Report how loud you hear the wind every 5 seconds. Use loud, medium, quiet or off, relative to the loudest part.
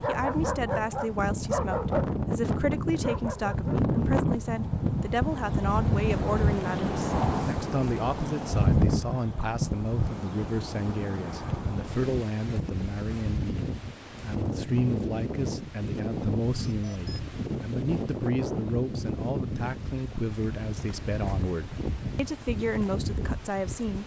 loud, loud, medium, medium, medium.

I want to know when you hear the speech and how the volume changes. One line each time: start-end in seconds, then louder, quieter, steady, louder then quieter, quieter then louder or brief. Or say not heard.
0.1-24.0 steady.